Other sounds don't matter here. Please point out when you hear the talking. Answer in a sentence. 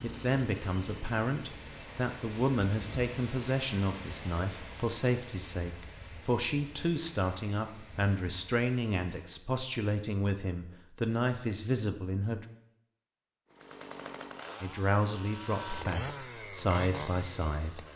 The talking can be heard from 0.0 to 12.4 s and from 14.6 to 17.9 s.